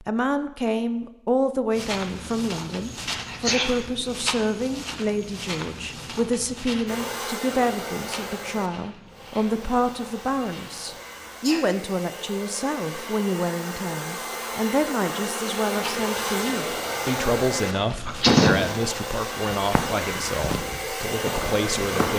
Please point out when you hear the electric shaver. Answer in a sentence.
You can't hear the electric shaver here.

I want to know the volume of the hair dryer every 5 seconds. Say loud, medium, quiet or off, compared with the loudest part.
off, medium, medium, loud, loud.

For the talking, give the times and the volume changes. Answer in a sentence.
The talking can be heard from 0.0 to 22.1 s, at a steady volume.